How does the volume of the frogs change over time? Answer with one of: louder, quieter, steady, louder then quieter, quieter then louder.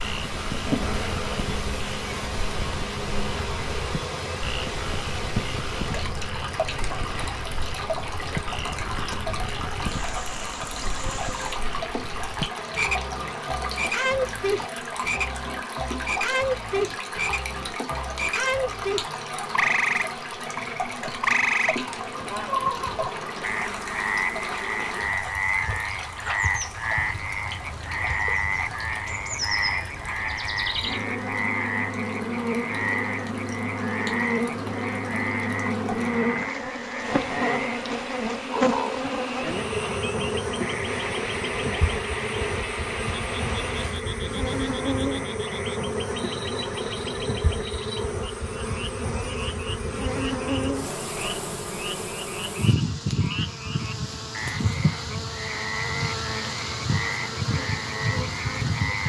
louder then quieter.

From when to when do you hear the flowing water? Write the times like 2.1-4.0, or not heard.
0.0-44.0.